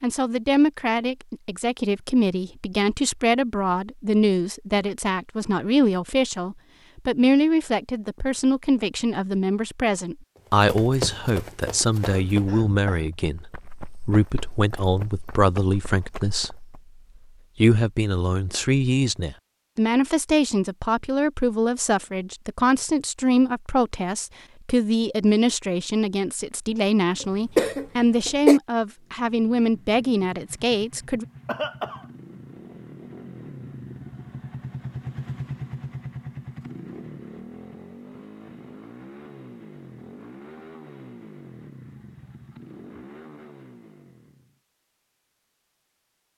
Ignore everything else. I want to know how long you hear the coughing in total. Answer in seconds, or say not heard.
3 s.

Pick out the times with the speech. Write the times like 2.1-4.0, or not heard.
0.0-16.8, 17.6-31.2.